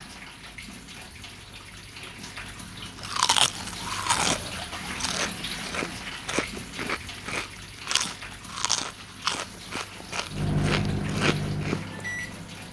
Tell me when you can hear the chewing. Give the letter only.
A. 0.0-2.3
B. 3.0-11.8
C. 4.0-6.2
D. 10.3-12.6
B.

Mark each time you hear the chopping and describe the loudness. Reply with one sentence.
You can't hear the chopping here.